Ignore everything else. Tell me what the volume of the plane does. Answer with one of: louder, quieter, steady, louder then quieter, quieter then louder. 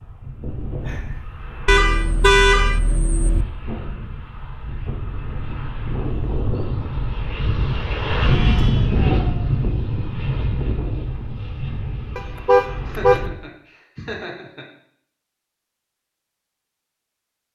louder then quieter.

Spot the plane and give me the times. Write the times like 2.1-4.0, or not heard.
0.0-13.3.